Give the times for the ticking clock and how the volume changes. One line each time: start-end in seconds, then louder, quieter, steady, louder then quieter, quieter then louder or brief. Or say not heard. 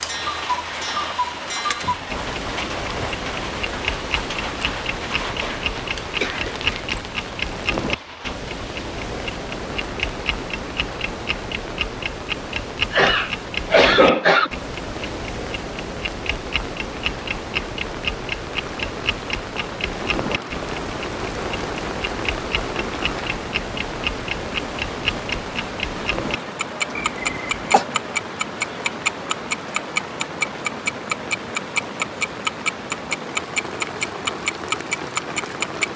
0.0-35.9 louder.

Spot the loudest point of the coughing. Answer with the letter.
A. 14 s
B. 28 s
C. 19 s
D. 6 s
A.